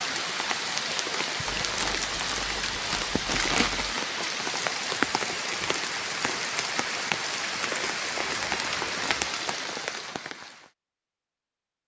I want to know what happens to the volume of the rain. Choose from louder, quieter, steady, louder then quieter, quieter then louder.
steady.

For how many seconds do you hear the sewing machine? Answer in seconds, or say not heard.
not heard.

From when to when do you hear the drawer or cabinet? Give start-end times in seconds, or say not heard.
not heard.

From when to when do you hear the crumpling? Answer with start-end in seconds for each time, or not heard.
1.4-4.0, 8.4-9.4.